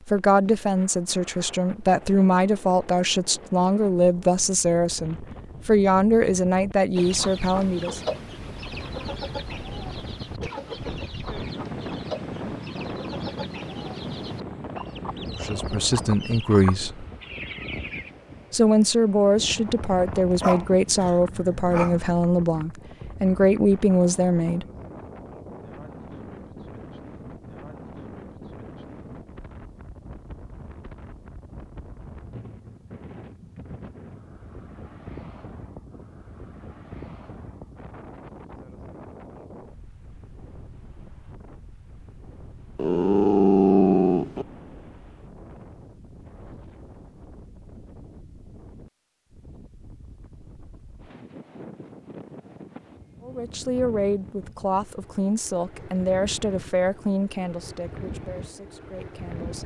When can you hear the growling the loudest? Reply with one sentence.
The volume of the growling peaks at 44 seconds.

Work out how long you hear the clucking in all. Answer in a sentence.
You can hear the clucking for 11 seconds altogether.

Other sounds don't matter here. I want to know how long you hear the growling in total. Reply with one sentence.
You can hear the growling for 4 seconds altogether.